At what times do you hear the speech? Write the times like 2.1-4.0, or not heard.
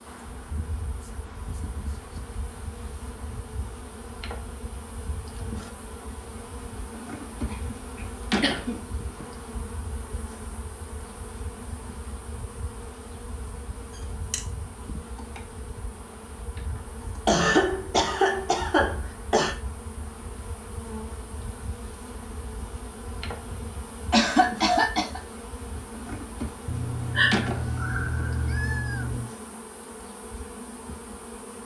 not heard.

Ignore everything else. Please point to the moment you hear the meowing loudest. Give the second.
27 s.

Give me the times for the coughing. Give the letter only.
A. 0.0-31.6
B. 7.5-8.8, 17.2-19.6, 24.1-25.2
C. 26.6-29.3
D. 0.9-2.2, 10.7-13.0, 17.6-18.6
B.